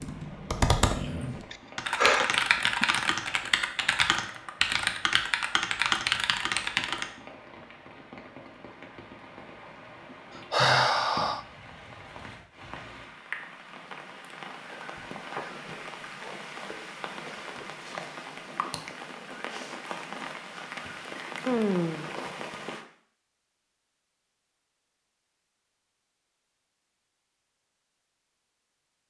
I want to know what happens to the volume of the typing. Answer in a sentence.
The volume of the typing stays about the same.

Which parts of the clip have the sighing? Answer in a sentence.
You can hear the sighing from 1.5 to 2.9 s, from 10.5 to 11.4 s and from 21.4 to 22.1 s.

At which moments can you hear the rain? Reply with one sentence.
You can hear the rain from 0.0 to 22.9 s.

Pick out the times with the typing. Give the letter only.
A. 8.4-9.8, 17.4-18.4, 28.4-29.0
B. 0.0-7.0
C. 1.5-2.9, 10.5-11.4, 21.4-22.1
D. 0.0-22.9
B.